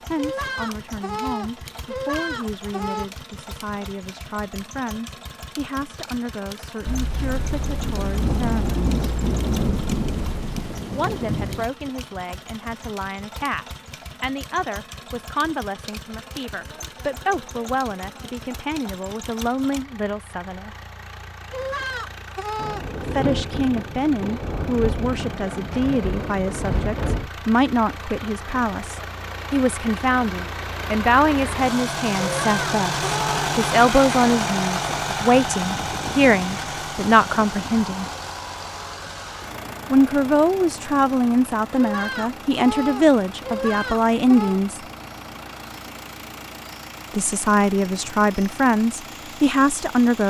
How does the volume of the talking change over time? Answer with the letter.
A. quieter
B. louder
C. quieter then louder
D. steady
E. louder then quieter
B.